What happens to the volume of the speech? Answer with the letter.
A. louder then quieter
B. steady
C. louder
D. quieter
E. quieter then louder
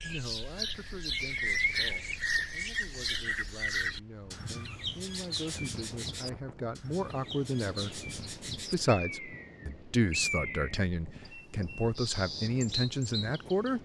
C.